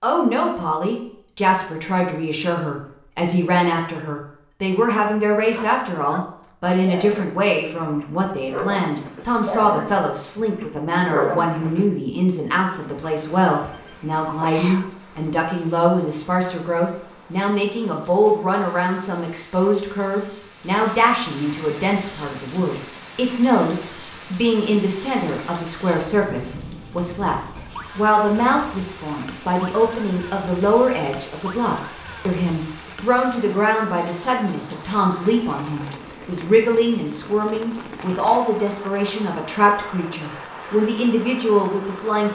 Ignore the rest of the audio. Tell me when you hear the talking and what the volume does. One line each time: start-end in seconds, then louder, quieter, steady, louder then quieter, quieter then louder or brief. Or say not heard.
0.0-42.2 steady.